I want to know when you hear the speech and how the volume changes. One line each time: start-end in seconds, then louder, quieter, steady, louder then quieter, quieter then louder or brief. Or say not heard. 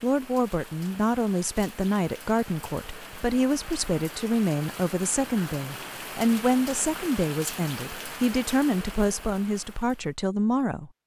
0.0-11.0 steady.